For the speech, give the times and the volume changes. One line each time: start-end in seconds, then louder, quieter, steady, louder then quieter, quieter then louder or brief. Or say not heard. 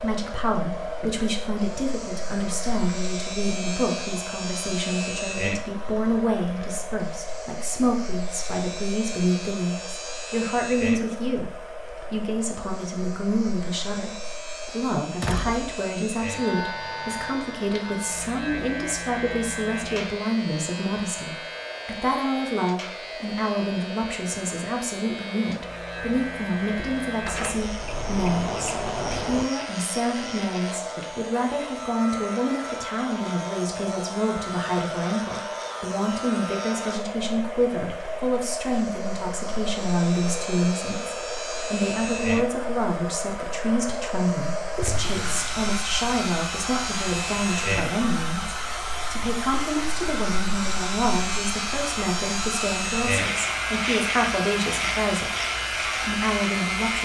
0.0-57.0 steady.